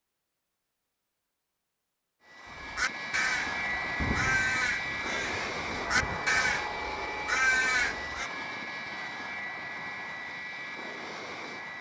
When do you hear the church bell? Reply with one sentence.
You can't hear the church bell here.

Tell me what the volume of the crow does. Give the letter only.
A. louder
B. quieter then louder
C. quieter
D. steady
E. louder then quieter
B.